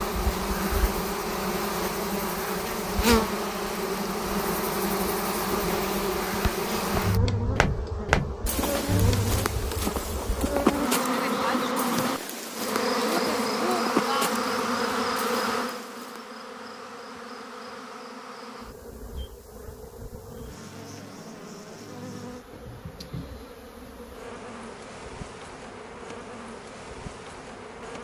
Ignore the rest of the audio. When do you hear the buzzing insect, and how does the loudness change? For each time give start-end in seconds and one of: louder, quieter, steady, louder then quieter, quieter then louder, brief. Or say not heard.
0.0-27.9 quieter.